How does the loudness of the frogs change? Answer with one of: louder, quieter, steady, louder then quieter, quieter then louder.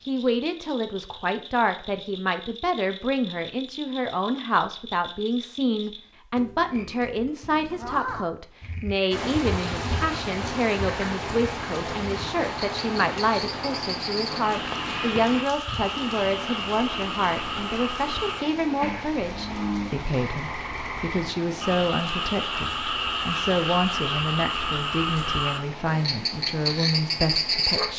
louder.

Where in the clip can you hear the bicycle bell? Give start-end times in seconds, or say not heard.
not heard.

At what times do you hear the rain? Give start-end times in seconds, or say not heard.
9.1-27.9.